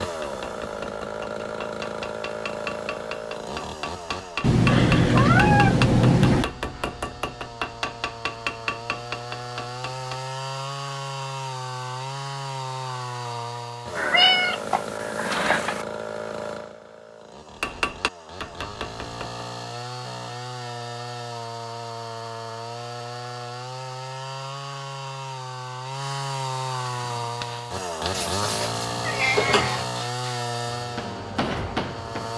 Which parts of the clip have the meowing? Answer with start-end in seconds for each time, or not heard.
4.4-6.5, 13.9-15.8, 28.1-29.9.